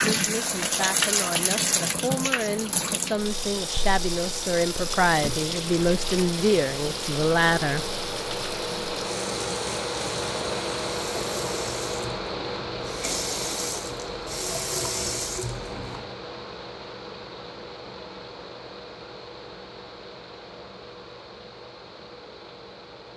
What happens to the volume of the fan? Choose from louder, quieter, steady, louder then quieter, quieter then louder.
louder then quieter.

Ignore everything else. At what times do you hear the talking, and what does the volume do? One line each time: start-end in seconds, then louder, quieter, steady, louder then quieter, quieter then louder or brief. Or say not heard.
0.1-7.8 louder.